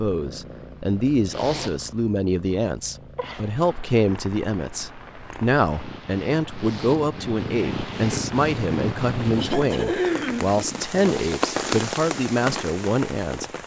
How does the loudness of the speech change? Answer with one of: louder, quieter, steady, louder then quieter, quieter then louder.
steady.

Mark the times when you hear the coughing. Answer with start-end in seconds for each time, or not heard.
9.3-10.6.